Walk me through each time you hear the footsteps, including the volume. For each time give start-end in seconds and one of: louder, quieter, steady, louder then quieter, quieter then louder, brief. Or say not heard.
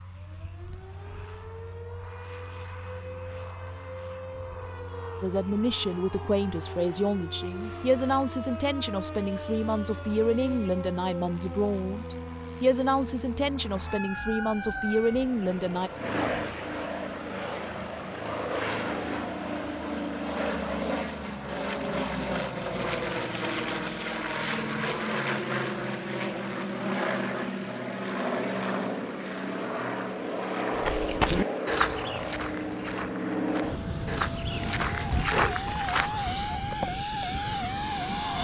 30.8-36.1 quieter then louder.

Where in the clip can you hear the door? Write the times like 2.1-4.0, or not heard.
not heard.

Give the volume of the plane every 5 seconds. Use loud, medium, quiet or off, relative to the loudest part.
quiet, quiet, quiet, loud, loud, loud, loud, loud.